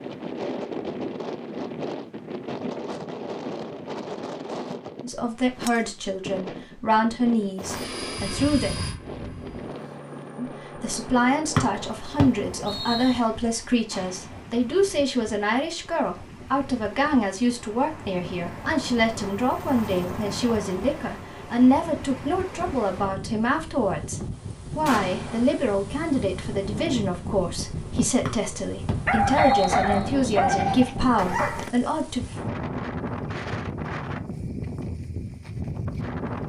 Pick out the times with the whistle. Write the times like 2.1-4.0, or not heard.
11.6-13.2, 28.2-30.4.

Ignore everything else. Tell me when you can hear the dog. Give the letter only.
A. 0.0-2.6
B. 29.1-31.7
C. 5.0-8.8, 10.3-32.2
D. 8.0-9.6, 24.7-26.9
B.